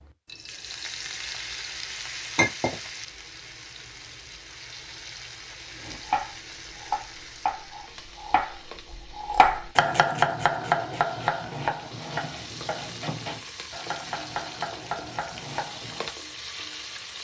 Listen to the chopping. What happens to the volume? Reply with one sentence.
The loudness of the chopping goes up, then down.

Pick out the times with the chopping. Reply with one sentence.
You can hear the chopping from 5.8 to 16.1 s.